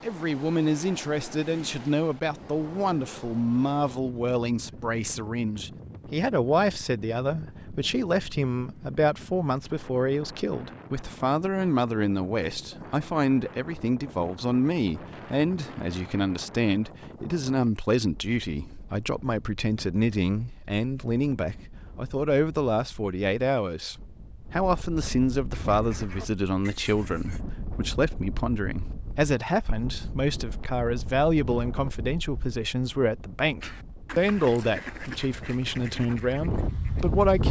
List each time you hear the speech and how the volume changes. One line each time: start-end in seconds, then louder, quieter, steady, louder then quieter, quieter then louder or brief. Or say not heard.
0.0-37.4 steady.